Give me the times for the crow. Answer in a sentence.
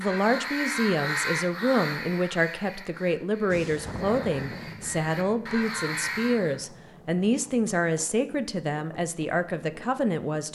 You can hear the crow from 0.0 to 6.5 s.